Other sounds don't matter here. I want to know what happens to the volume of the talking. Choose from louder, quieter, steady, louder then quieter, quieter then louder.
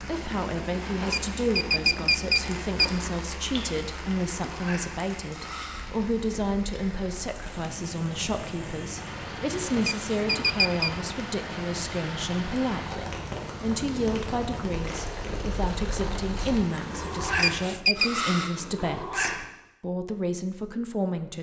steady.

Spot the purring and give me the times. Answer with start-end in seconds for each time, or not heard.
0.0-19.4.